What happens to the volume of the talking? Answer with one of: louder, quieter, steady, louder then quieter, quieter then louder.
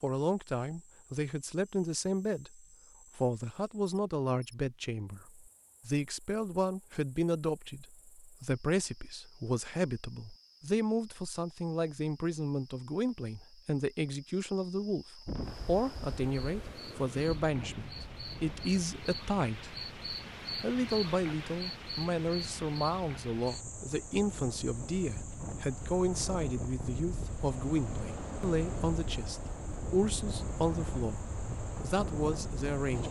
steady.